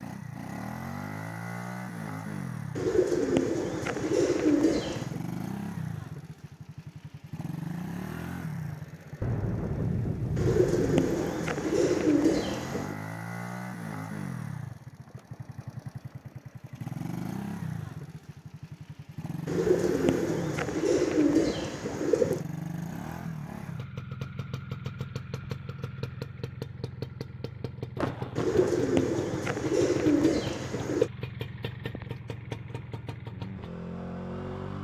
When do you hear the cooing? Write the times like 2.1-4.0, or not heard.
2.8-5.2, 10.3-12.9, 19.4-22.4, 28.4-31.1.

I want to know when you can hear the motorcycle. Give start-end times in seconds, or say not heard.
0.0-34.7.